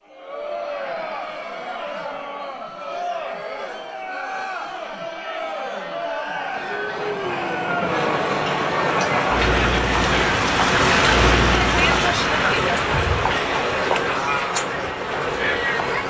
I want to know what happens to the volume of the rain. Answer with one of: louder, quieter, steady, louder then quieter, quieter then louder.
louder then quieter.